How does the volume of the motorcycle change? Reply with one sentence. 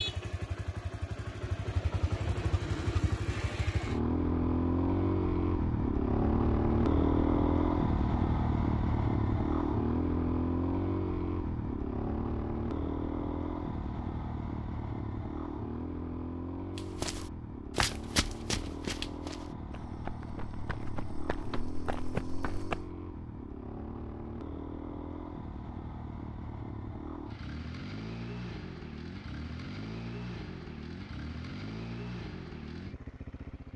The volume of the motorcycle goes down.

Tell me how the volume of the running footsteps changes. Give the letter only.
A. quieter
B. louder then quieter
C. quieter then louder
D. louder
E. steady
C.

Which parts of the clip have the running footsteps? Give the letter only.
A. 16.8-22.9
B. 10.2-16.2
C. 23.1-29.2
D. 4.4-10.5
A.